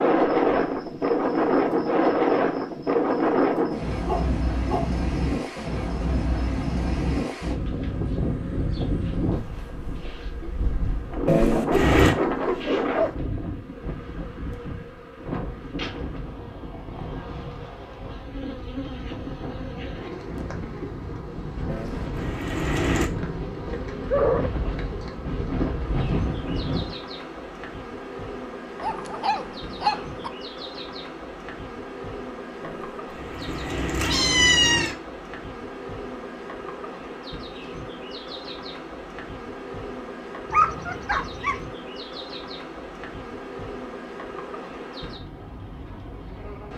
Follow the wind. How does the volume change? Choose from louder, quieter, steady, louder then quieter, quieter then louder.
quieter then louder.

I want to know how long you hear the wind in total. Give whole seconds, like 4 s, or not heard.
27 s.